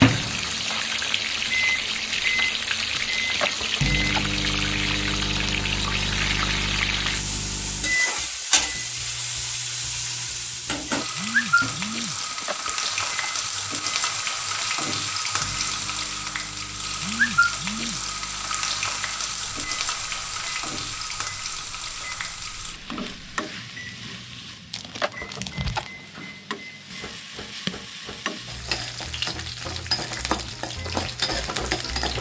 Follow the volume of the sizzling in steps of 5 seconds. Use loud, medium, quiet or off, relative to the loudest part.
loud, loud, loud, loud, medium, medium, loud.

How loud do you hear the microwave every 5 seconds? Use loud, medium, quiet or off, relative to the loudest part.
loud, medium, quiet, quiet, quiet, quiet, quiet.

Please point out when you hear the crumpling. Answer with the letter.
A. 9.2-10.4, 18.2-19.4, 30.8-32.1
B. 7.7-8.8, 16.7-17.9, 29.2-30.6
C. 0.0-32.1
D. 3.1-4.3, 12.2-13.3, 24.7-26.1
D.